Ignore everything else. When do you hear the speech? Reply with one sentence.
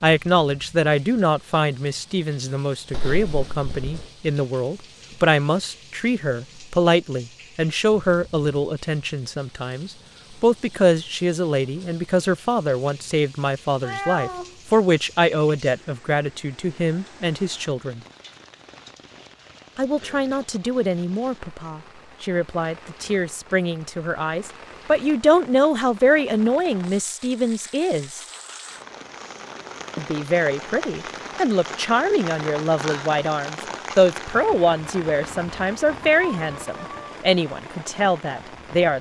The speech can be heard from 0.0 to 18.0 s, from 19.8 to 28.2 s and from 29.9 to 38.9 s.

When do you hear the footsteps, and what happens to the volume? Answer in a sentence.
You can't hear the footsteps here.